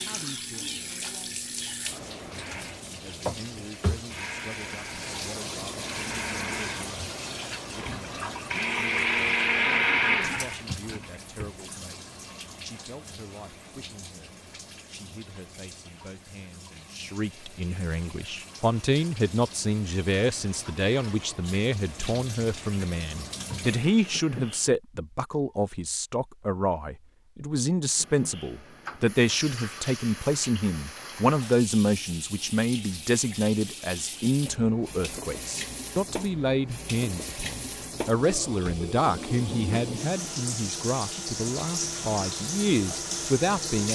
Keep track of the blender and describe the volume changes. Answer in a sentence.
The loudness of the blender goes up.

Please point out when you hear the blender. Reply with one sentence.
You can hear the blender from 2.3 to 11.6 s.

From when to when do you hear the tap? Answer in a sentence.
The tap can be heard from 0.0 to 24.7 s and from 27.9 to 43.9 s.